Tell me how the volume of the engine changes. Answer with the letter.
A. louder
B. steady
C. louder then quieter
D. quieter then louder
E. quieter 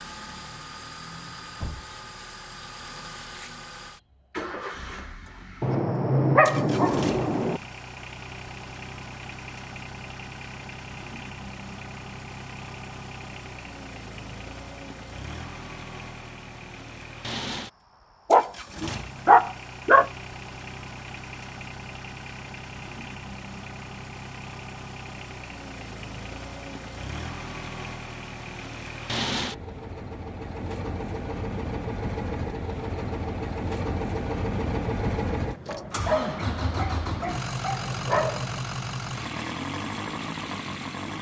A.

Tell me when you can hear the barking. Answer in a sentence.
The barking can be heard from 5.6 to 7.6 s, from 18.3 to 20.1 s and from 35.6 to 38.6 s.